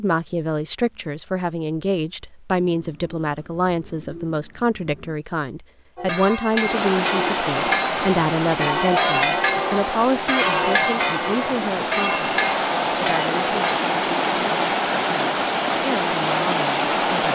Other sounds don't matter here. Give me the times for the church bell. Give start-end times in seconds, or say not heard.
6.0-13.8.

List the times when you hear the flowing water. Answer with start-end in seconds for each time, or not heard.
6.5-17.3.